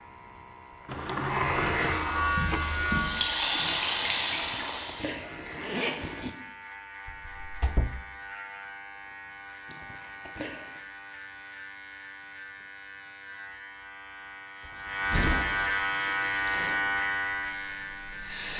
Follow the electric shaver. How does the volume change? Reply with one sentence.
The loudness of the electric shaver goes down, then up.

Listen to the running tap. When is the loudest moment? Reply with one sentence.
The loudest moment of the running tap is at 4 seconds.